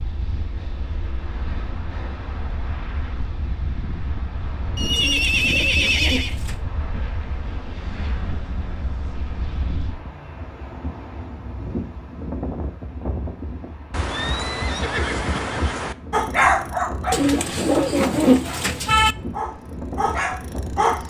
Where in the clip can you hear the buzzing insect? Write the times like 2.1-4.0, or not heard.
not heard.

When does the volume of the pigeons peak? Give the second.
18 s.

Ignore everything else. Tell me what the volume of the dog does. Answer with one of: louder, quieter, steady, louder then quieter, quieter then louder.
quieter then louder.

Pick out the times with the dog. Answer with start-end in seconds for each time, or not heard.
16.1-21.0.